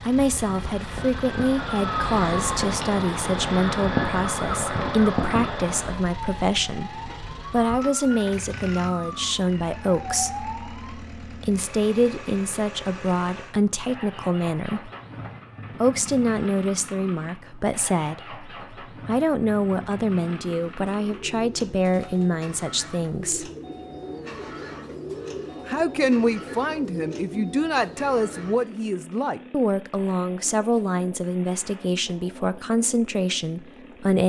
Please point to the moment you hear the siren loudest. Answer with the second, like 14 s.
4 s.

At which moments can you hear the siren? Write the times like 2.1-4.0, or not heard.
0.1-11.0.